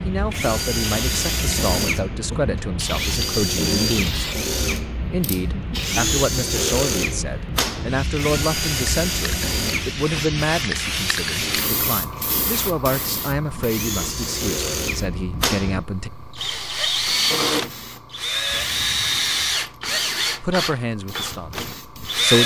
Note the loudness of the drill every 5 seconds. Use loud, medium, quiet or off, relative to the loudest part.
loud, loud, medium, loud, loud.